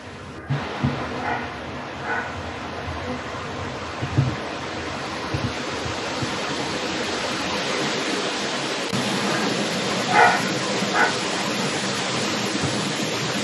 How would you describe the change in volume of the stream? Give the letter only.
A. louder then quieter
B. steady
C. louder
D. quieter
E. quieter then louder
C.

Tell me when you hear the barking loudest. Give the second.
10 s.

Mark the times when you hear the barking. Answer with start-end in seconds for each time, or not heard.
0.3-2.4, 9.2-11.1.